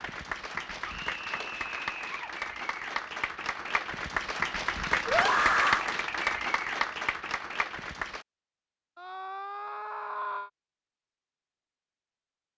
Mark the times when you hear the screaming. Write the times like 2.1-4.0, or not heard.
0.8-2.3, 5.0-5.8, 8.9-10.5.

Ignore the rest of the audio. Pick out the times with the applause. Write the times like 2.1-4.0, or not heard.
0.0-8.2.